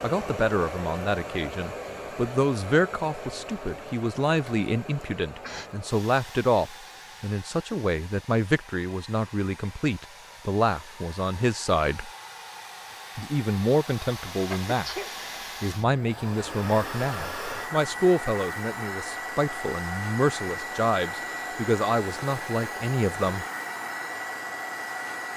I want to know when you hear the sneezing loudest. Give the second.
15 s.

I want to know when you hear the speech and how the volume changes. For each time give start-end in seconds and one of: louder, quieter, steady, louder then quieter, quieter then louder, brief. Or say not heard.
0.0-12.1 steady
13.2-23.4 steady.